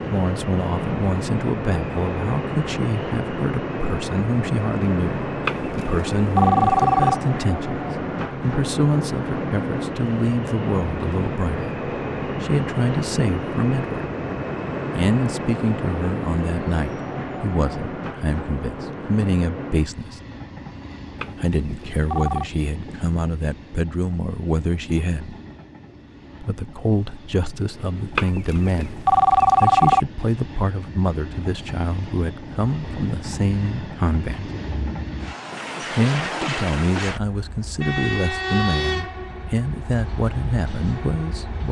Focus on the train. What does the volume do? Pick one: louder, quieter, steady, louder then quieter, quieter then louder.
quieter then louder.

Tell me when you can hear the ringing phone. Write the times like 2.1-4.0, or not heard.
5.5-7.2, 21.1-22.5, 28.1-30.1.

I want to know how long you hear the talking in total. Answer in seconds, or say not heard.
37 s.